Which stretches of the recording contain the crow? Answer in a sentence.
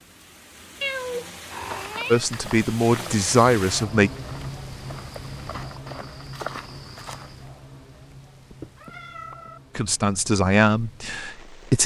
The crow can't be heard in this clip.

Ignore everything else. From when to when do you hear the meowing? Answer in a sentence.
You can hear the meowing from 0.8 to 2.3 s and from 8.5 to 9.6 s.